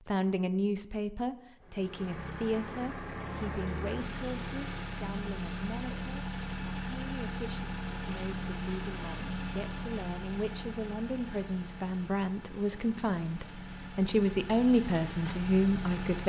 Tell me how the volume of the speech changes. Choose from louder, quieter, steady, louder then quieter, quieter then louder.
quieter then louder.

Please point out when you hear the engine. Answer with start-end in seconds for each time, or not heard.
1.6-16.2.